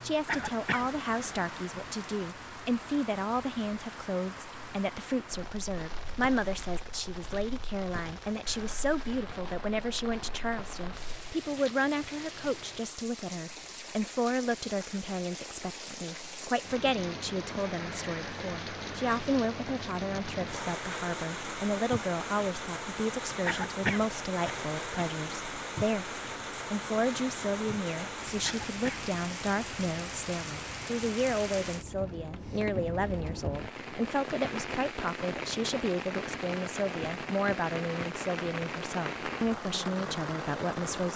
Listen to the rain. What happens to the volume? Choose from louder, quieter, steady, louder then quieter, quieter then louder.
louder.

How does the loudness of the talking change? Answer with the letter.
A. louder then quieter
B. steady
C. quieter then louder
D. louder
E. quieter
B.